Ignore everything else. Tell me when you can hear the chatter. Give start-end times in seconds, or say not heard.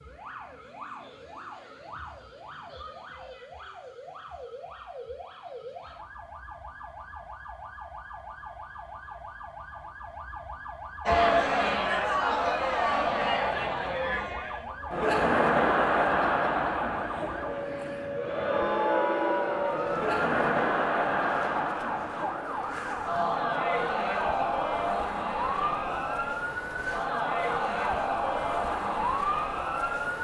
11.1-30.1.